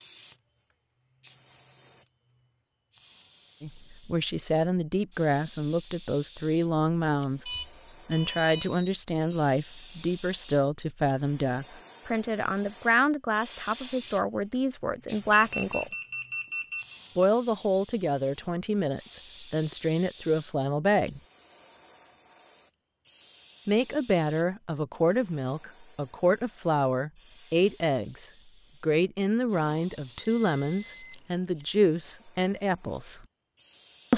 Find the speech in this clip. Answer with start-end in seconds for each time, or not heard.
3.6-15.9, 17.1-21.2, 23.6-33.2.